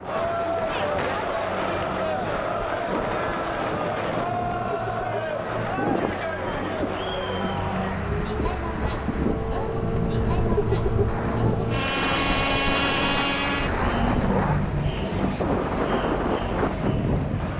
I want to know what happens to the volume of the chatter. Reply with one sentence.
The volume of the chatter goes down.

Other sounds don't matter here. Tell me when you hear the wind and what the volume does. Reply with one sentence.
You can hear the wind from 0.0 to 17.5 s, getting louder.